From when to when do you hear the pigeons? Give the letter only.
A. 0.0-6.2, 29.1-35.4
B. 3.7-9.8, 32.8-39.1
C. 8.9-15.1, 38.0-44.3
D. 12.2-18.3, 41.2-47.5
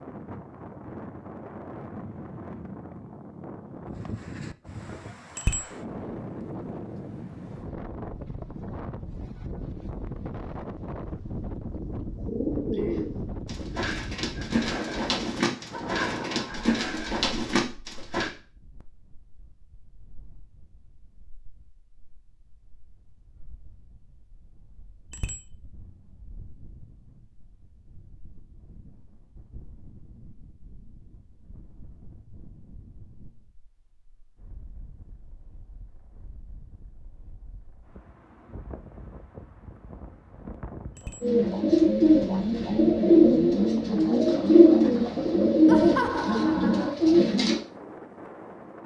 D.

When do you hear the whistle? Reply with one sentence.
The whistle can't be heard in this clip.